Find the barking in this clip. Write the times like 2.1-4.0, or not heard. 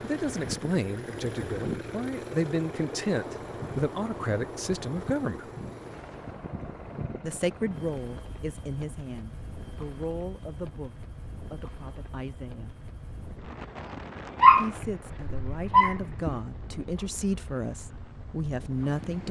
14.4-16.4.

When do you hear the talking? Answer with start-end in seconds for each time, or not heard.
0.0-5.5, 7.2-12.8, 14.6-19.2.